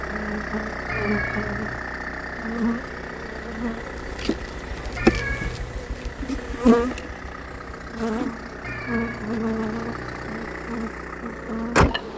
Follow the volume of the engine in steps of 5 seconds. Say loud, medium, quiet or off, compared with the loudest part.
medium, medium, loud.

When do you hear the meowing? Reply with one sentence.
You can hear the meowing from 0.8 to 1.9 s, from 5.0 to 5.8 s and from 8.6 to 10.3 s.